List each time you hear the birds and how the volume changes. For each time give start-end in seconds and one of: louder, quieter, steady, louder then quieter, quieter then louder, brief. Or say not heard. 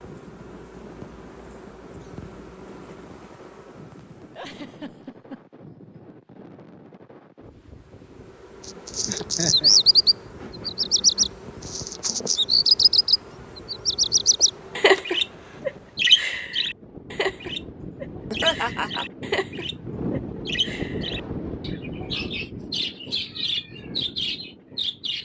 8.7-25.2 quieter.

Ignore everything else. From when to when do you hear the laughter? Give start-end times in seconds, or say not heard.
4.3-5.5, 9.1-9.7, 18.3-19.1.